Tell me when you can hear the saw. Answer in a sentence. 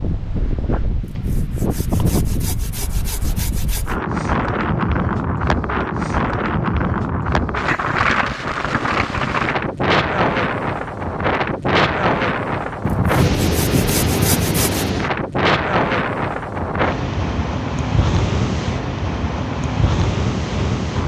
You can hear the saw from 1.0 to 4.0 s and from 12.8 to 14.9 s.